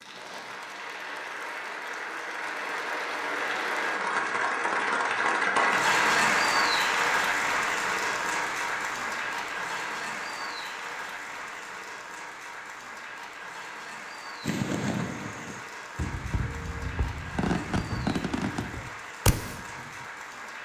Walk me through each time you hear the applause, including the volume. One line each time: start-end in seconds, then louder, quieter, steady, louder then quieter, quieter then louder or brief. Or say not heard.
0.0-20.5 louder then quieter.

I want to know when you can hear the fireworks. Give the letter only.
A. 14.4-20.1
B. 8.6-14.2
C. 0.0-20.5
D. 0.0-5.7
A.